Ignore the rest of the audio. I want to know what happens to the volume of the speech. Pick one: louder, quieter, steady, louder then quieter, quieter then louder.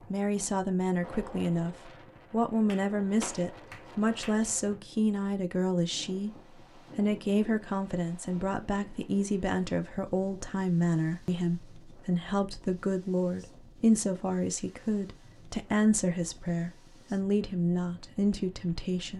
steady.